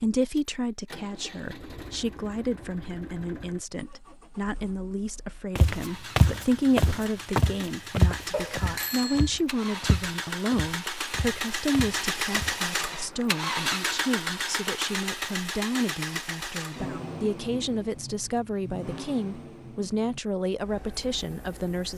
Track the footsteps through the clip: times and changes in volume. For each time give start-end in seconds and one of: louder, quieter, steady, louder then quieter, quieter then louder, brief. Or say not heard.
5.5-12.7 quieter.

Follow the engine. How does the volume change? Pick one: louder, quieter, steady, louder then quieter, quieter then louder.
louder then quieter.